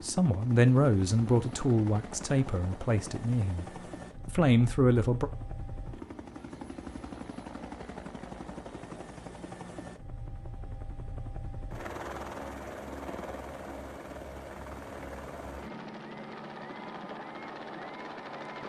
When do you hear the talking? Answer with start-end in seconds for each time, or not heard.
0.0-3.6, 4.2-5.3.